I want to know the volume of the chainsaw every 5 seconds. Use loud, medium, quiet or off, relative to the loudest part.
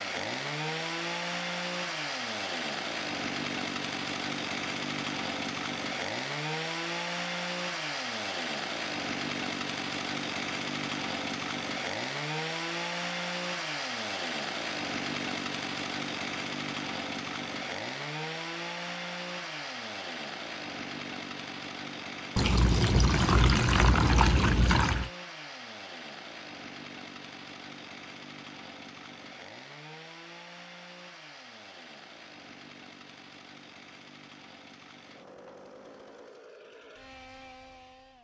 loud, loud, loud, loud, medium, medium, quiet, quiet.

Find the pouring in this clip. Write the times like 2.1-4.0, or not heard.
22.4-25.1.